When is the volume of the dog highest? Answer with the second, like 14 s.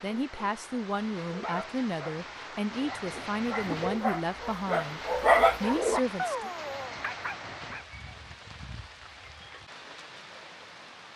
5 s.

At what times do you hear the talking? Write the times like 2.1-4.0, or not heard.
0.0-6.5.